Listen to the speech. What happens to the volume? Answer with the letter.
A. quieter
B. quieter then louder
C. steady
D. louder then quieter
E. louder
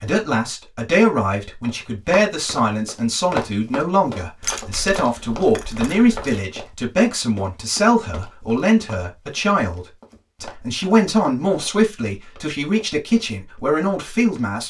C.